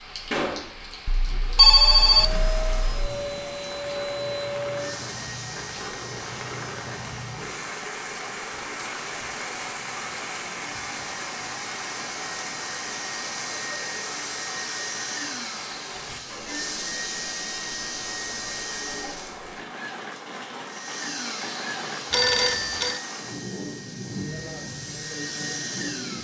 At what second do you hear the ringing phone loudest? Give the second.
2 s.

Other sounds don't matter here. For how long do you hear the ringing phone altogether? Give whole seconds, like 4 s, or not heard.
3 s.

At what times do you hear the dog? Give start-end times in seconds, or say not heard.
not heard.